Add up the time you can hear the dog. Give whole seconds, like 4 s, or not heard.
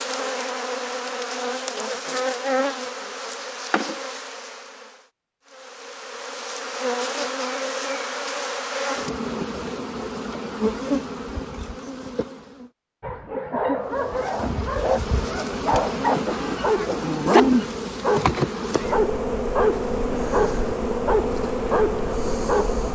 10 s.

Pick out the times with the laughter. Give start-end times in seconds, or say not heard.
not heard.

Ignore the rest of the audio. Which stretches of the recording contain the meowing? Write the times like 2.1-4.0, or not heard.
16.3-17.4.